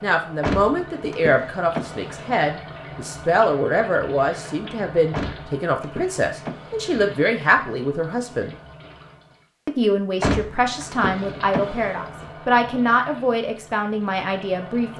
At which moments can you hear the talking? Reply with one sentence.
The talking can be heard from 0.0 to 8.6 s and from 9.7 to 14.9 s.